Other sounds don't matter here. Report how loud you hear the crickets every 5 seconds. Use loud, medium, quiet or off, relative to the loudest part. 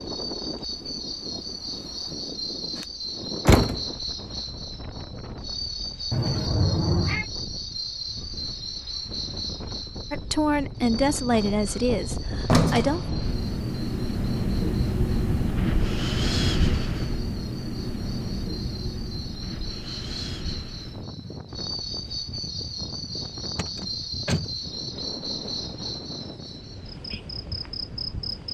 loud, loud, medium, medium, loud, loud.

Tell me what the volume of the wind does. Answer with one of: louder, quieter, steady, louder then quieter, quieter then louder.
louder then quieter.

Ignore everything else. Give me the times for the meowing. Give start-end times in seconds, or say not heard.
6.1-7.2.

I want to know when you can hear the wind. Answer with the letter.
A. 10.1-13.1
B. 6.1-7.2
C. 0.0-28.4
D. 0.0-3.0
C.